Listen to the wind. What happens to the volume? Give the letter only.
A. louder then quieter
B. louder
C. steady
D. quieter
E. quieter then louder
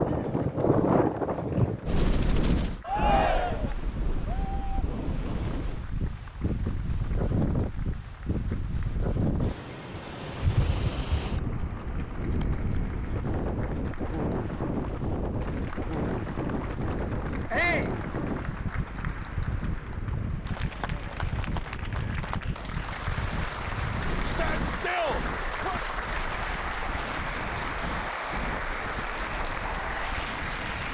D.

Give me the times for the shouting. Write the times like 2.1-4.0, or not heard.
2.9-3.8, 17.5-17.9, 24.2-25.8.